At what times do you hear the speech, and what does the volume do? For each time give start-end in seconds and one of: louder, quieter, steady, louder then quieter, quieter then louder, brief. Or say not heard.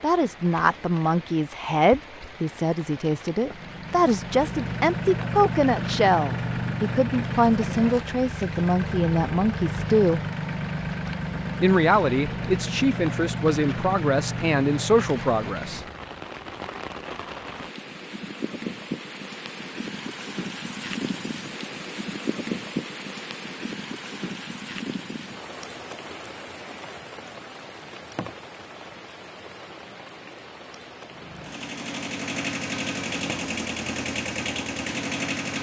0.0-10.2 steady
11.6-15.8 steady.